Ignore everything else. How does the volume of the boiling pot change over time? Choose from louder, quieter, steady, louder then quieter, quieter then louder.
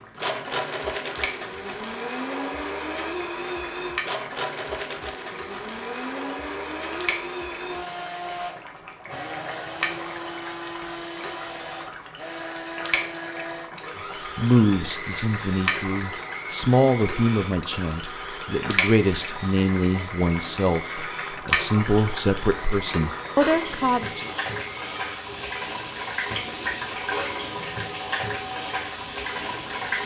louder.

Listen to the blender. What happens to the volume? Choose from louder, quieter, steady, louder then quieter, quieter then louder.
quieter.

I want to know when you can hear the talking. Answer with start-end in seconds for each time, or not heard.
14.3-24.3.